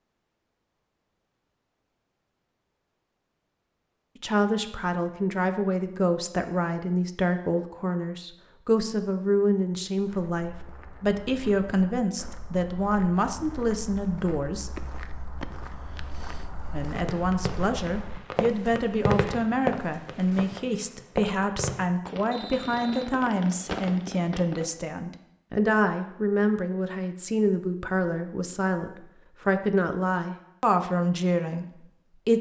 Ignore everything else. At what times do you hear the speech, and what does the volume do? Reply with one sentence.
The speech can be heard from 4.2 to 14.7 s, at a steady volume; and from 16.7 to 32.3 s, at a steady volume.